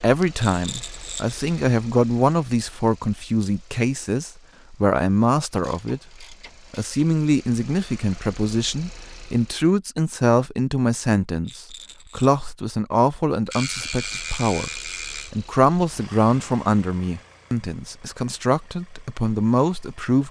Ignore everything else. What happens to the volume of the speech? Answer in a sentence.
The volume of the speech stays about the same.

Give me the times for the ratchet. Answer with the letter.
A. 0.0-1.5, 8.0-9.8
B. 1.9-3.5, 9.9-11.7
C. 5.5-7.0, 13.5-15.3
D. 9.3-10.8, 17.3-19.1
C.